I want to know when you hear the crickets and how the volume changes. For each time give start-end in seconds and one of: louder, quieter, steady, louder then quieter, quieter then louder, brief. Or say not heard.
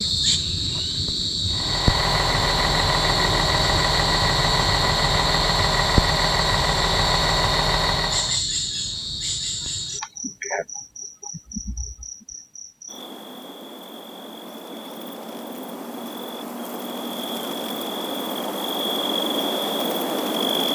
0.0-20.6 quieter then louder.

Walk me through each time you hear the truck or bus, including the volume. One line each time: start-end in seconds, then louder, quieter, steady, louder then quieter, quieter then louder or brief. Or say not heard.
1.5-8.4 steady.